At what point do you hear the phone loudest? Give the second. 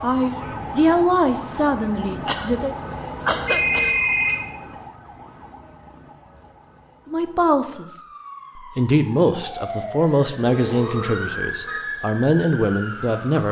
4 s.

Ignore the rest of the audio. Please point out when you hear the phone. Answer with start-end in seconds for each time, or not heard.
3.5-4.4, 10.4-11.8.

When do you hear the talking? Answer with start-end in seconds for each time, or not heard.
0.0-2.8, 7.0-13.4.